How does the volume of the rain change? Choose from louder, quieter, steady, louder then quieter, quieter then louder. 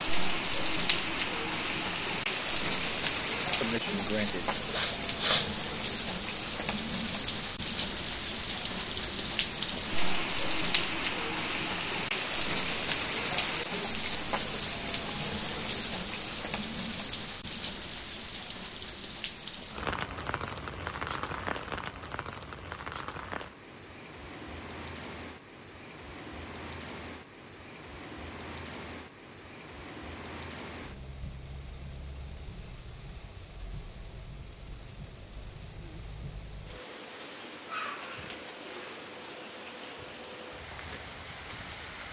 quieter.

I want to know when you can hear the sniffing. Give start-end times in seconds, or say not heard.
3.6-5.5.